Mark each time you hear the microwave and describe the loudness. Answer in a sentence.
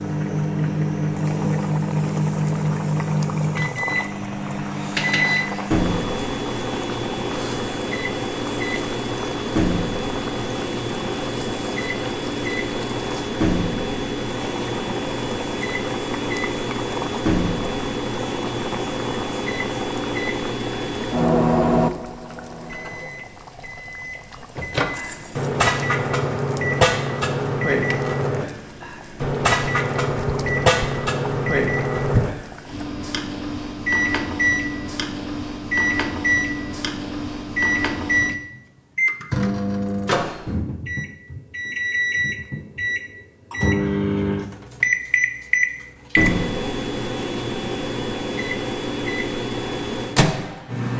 You can hear the microwave from 0.0 to 50.9 s, at a steady volume.